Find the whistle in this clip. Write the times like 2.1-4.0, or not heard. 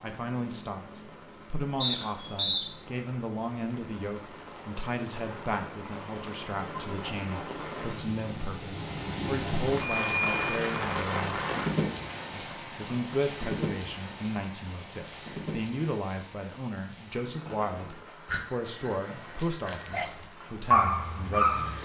1.8-2.6.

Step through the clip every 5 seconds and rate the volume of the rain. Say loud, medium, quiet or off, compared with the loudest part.
quiet, loud, loud, medium, quiet.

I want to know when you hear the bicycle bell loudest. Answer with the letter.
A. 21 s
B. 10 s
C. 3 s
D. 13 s
B.